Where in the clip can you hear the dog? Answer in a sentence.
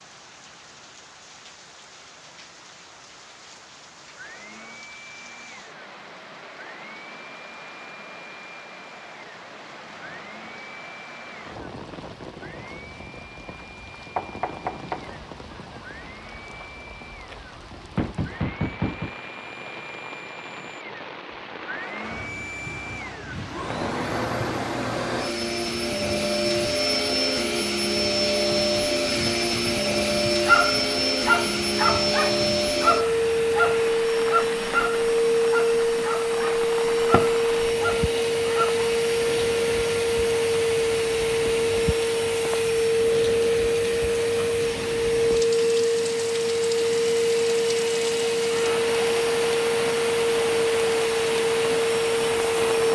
The dog can be heard from 30.4 to 38.8 s.